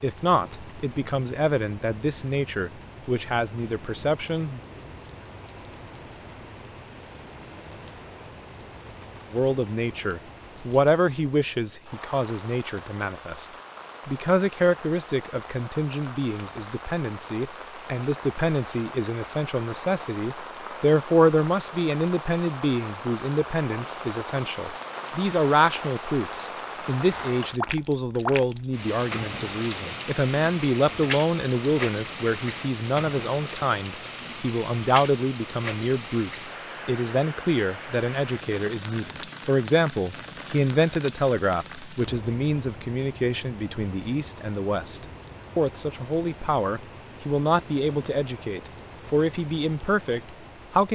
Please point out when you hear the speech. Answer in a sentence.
You can hear the speech from 0.0 to 4.6 s and from 9.3 to 50.8 s.